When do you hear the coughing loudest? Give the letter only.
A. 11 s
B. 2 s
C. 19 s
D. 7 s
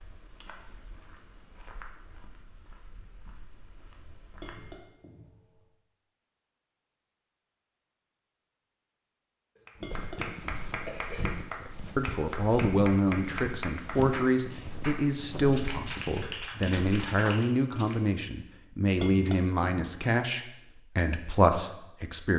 A.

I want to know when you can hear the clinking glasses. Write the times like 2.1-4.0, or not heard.
4.3-5.7, 9.8-10.3, 18.9-19.9.